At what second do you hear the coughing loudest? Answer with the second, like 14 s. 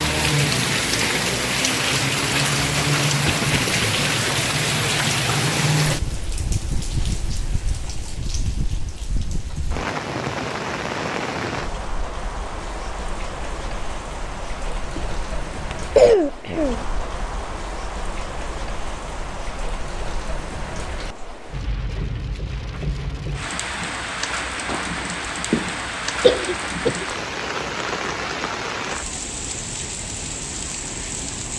16 s.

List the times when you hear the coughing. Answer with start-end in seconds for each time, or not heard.
3.2-3.9, 14.9-16.8, 24.6-27.1.